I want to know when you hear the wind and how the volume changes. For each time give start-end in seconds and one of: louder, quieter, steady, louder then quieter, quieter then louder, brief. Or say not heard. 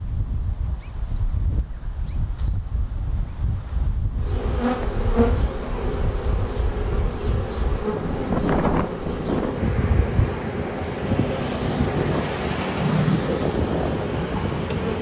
0.0-14.9 louder.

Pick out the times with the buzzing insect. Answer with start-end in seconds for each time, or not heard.
4.2-14.9.